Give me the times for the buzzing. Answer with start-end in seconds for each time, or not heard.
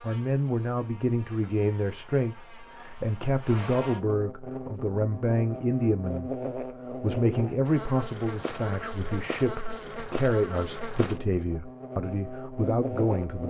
0.0-13.4.